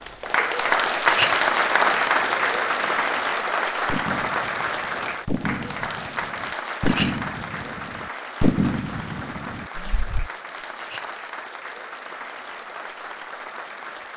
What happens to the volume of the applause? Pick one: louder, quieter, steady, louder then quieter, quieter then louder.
quieter.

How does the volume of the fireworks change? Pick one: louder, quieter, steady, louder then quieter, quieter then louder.
louder.